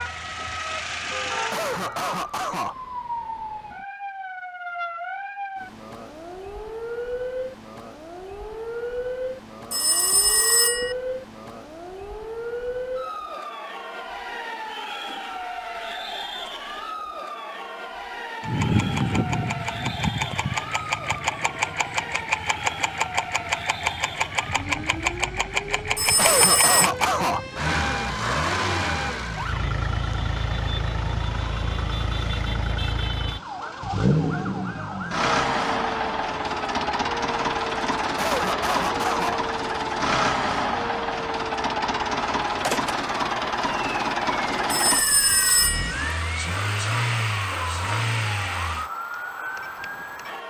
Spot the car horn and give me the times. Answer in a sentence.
The car horn can't be heard in this clip.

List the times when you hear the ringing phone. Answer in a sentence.
The ringing phone can be heard from 9.7 to 10.9 s, from 25.9 to 26.9 s and from 44.7 to 46.0 s.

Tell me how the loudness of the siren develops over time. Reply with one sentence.
The volume of the siren stays about the same.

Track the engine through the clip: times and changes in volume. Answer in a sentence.
You can hear the engine briefly from 0.0 to 1.6 s; and from 18.4 to 48.9 s, at a steady volume.